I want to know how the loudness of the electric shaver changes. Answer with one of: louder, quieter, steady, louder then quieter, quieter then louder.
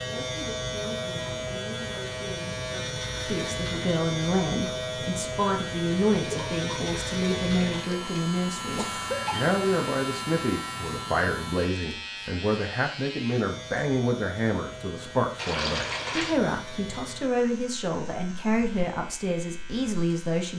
quieter.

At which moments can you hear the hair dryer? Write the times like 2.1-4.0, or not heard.
not heard.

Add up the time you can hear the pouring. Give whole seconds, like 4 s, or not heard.
3 s.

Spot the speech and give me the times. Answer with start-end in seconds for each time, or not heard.
0.1-20.5.